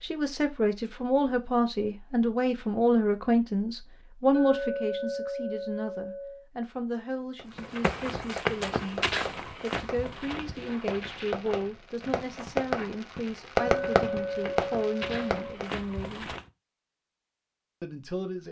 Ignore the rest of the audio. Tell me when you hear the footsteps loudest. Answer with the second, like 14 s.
9 s.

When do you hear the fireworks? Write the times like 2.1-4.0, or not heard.
7.3-15.7.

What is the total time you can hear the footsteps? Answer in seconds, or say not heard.
9 s.